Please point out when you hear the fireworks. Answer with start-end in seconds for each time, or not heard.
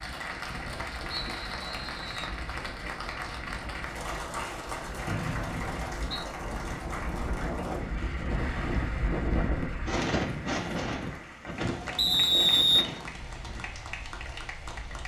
not heard.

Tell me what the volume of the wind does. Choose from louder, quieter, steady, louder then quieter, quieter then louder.
louder then quieter.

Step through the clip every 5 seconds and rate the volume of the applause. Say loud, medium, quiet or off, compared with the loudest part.
loud, loud, medium.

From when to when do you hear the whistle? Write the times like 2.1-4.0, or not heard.
1.1-2.4, 5.0-6.0, 11.9-12.8.